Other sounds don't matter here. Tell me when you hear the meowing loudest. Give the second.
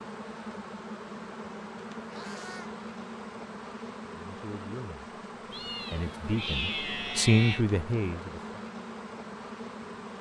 7 s.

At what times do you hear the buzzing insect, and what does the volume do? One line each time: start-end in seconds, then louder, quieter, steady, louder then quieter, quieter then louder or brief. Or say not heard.
0.0-10.1 steady.